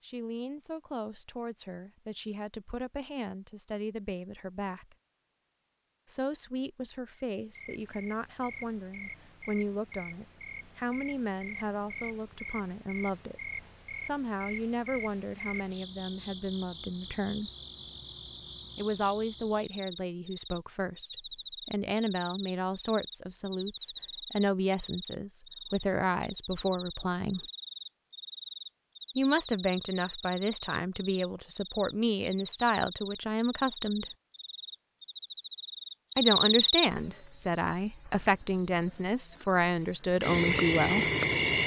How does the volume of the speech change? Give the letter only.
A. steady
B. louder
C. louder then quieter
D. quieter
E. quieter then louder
B.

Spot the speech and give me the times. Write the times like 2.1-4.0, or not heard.
0.0-5.0, 6.0-13.4, 14.0-17.5, 18.8-27.4, 29.1-34.0, 36.1-41.0.